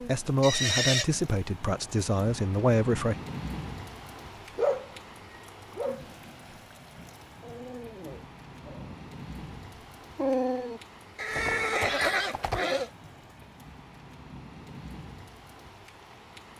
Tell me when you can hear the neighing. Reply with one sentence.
The neighing can be heard from 0.4 to 1.1 s and from 11.2 to 12.9 s.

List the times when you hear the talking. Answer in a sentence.
You can hear the talking from 0.0 to 3.1 s.